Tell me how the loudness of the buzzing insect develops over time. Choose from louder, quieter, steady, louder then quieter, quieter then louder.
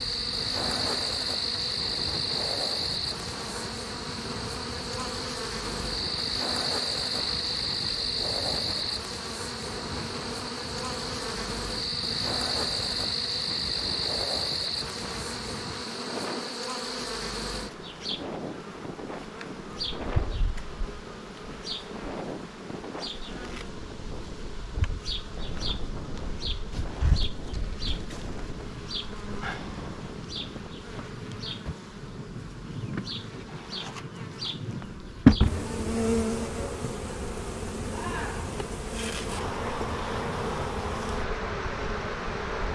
quieter then louder.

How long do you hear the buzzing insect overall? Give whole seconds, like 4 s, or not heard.
43 s.